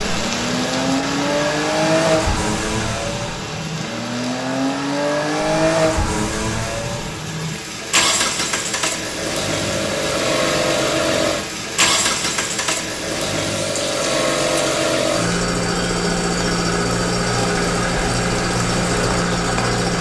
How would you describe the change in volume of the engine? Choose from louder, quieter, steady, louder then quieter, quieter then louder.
steady.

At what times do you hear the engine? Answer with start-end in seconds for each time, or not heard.
0.0-19.9.